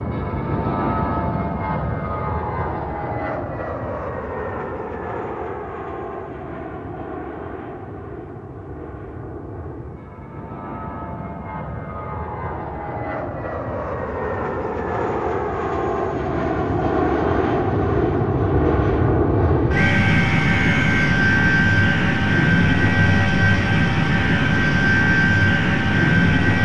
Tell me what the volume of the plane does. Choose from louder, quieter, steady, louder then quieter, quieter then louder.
quieter then louder.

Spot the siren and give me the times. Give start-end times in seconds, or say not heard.
not heard.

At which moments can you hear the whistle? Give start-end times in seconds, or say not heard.
19.7-21.0.